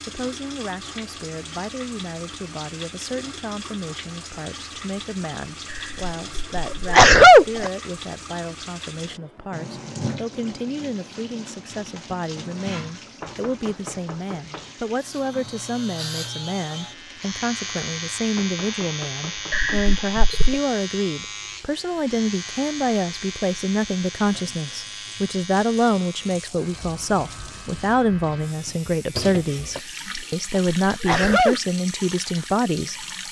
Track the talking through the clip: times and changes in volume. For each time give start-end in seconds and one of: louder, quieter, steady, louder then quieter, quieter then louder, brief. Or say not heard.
0.0-33.2 louder.